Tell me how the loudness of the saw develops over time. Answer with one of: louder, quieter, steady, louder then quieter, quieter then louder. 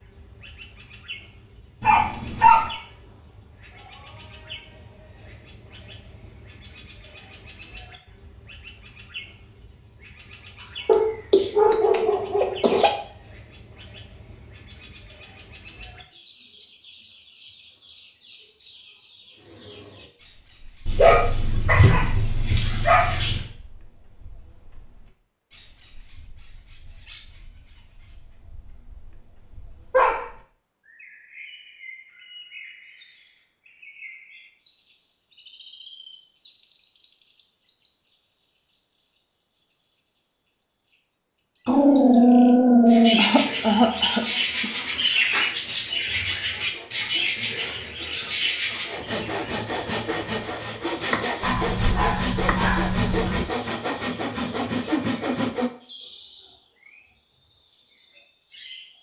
louder.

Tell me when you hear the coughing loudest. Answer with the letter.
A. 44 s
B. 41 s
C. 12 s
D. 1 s
A.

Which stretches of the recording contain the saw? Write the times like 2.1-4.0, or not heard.
44.1-55.7.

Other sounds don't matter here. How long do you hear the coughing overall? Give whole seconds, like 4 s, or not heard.
3 s.